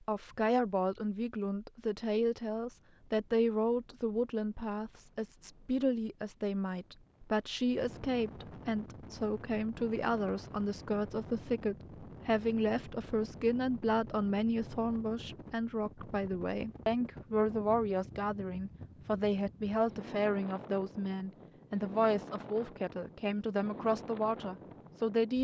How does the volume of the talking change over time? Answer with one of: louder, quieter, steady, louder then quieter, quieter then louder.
steady.